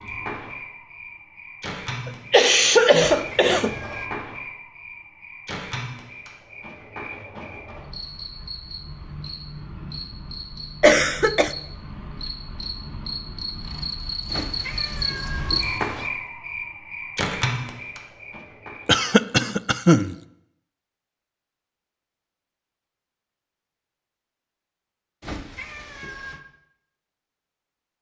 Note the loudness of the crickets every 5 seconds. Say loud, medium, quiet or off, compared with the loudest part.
medium, medium, medium, loud, off, off.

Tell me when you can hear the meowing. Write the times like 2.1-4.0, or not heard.
3.1-4.1, 14.3-16.1, 25.2-26.4.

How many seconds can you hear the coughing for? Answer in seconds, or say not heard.
4 s.